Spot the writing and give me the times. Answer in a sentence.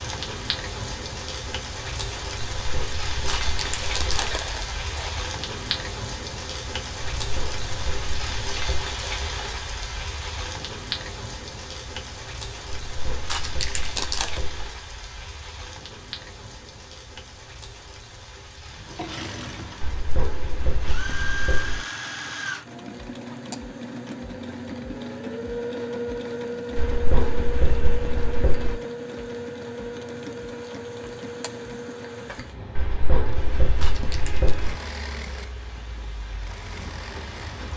The writing can be heard from 2.5 to 4.3 s, from 7.2 to 8.9 s, from 12.8 to 14.7 s, from 19.8 to 21.8 s, from 26.8 to 28.8 s and from 32.8 to 34.8 s.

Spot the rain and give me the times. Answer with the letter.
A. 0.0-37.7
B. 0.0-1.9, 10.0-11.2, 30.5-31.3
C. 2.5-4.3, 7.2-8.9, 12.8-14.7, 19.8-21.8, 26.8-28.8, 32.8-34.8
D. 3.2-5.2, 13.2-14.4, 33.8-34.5
A.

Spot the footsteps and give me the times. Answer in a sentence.
You can't hear the footsteps here.